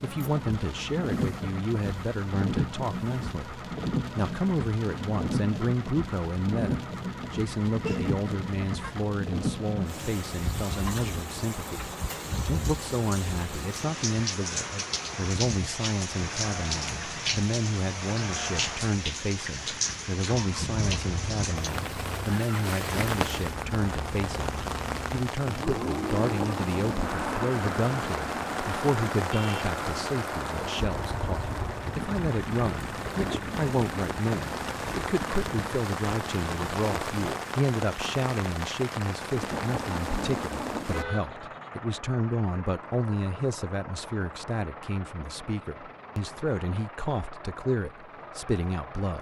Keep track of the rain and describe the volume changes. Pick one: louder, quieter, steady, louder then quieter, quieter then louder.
steady.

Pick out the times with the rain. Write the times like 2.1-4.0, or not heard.
0.0-41.0.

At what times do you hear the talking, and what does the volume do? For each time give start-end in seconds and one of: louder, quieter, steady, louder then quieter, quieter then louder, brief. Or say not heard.
0.0-49.1 steady.